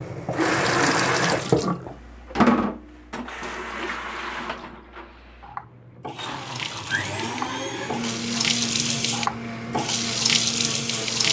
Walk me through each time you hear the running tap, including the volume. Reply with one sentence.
You can hear the running tap from 0.0 to 11.2 s, getting quieter then louder.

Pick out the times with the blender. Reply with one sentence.
You can hear the blender from 6.2 to 11.2 s.